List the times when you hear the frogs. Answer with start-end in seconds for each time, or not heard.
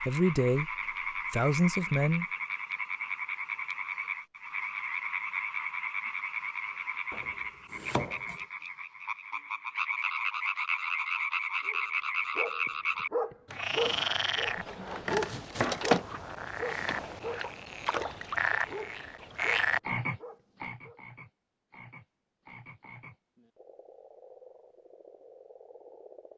0.0-26.3.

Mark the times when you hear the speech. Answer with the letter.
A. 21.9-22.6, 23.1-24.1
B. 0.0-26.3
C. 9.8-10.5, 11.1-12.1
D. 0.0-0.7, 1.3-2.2
D.